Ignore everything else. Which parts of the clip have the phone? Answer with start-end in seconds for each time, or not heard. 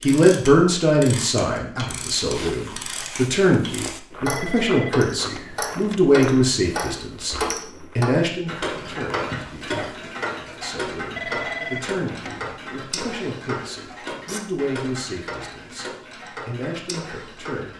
4.2-6.0, 11.2-12.7.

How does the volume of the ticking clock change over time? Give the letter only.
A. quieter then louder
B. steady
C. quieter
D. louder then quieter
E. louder
D.